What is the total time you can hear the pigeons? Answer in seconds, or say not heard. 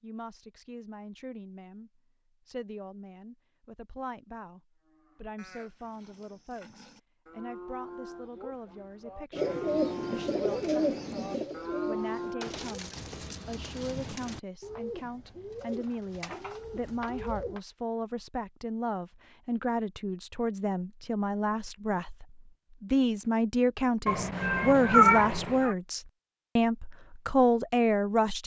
8 s.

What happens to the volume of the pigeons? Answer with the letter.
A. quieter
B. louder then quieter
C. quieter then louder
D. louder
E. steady
A.